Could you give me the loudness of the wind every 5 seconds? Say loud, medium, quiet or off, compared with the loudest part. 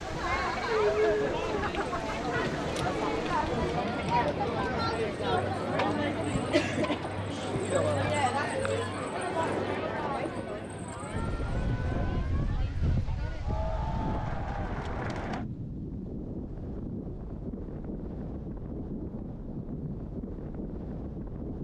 medium, loud, loud, loud, loud.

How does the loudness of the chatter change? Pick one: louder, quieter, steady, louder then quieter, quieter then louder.
quieter.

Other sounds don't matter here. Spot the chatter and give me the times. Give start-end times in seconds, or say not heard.
0.0-15.4.